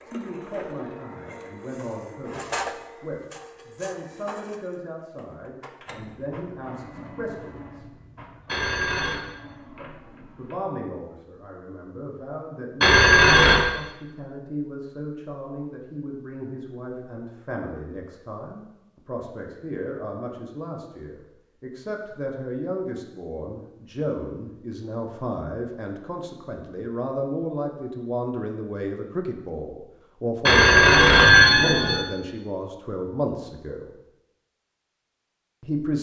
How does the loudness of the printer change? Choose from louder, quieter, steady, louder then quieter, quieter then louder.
louder then quieter.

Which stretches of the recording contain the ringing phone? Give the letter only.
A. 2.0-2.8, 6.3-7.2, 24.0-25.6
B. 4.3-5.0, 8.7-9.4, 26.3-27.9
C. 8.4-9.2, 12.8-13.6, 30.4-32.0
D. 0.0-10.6
C.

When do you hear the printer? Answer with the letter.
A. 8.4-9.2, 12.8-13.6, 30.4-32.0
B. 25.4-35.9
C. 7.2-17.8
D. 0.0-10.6
D.